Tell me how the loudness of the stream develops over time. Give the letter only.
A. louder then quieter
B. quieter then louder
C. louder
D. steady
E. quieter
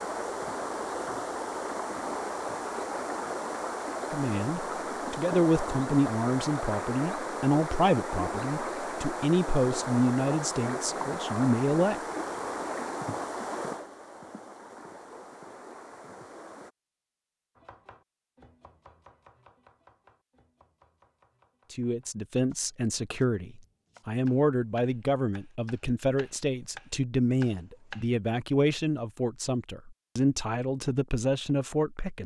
E.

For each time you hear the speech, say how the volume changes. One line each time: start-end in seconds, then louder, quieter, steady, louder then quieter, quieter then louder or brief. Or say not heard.
4.1-12.0 steady
21.7-32.2 steady.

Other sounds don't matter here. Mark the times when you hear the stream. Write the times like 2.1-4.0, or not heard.
0.0-16.7.